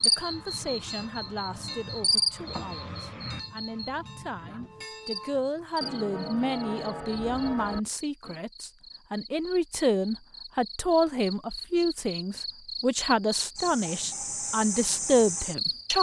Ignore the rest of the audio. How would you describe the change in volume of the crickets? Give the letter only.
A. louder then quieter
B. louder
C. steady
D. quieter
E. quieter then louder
E.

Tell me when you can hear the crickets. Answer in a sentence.
You can hear the crickets from 0.0 to 15.9 s.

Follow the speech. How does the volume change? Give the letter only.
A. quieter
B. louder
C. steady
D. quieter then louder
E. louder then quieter
B.